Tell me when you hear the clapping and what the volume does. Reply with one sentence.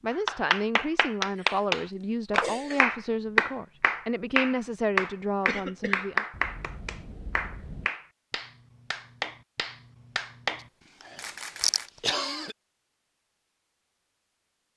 The clapping can be heard from 0.1 to 10.7 s, getting quieter.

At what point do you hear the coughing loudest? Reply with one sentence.
The loudest moment of the coughing is at 12 seconds.